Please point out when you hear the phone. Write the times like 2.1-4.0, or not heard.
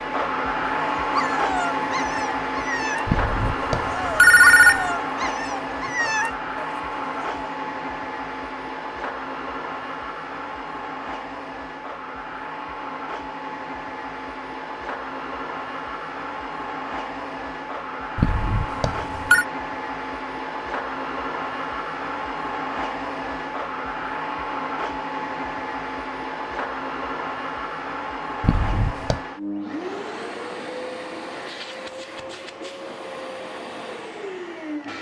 3.0-4.9, 18.1-19.4, 28.4-29.2.